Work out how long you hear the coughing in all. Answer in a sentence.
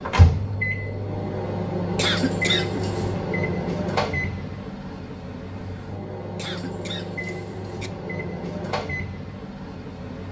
You can hear the coughing for 3 seconds altogether.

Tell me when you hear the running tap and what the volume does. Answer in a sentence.
The running tap can't be heard in this clip.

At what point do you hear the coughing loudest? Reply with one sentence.
The volume of the coughing peaks at 2 seconds.